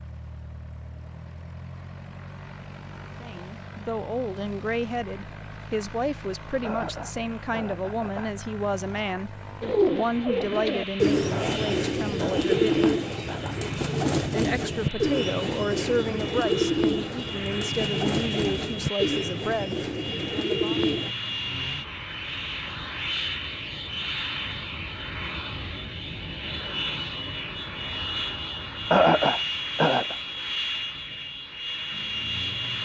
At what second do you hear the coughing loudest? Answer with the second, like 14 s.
29 s.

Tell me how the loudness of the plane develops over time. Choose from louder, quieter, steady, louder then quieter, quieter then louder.
louder.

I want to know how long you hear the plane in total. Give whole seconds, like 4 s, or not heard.
33 s.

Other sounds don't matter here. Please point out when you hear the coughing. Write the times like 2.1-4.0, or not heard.
6.6-8.3, 11.3-13.7, 28.9-30.1.